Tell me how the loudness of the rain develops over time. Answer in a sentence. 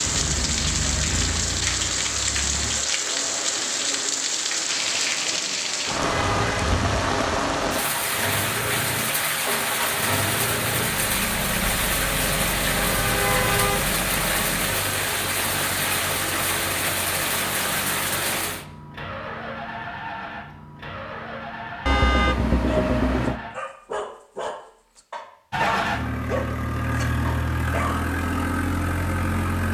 The volume of the rain stays about the same.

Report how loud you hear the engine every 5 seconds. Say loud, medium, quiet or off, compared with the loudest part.
medium, medium, loud, medium, medium, loud.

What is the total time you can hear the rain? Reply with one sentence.
You can hear the rain for 19 seconds altogether.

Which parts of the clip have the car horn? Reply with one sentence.
You can hear the car horn from 6.0 to 6.7 s, from 12.8 to 13.8 s and from 21.9 to 23.4 s.